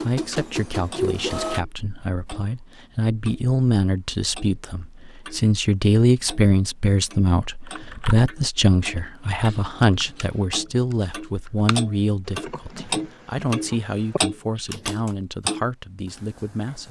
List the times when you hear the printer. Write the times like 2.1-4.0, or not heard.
0.0-1.6.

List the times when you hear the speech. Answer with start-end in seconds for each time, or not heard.
0.0-16.8.